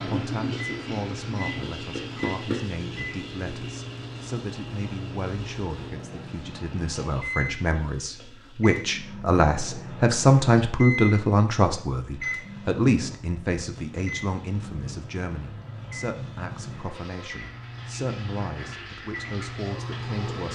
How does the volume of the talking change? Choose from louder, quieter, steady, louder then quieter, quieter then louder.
louder then quieter.